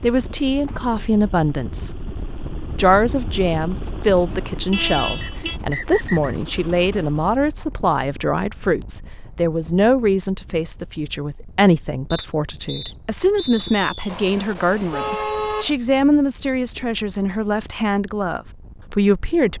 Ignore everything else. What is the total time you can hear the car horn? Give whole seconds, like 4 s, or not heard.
3 s.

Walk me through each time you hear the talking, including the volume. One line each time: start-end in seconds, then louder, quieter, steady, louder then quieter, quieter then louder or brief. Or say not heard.
0.0-1.9 brief
2.8-19.5 steady.